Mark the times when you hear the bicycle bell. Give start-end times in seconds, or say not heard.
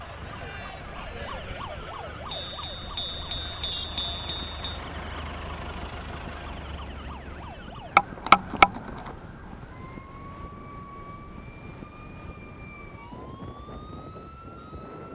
2.3-4.8, 8.0-9.2.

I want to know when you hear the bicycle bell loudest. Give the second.
8 s.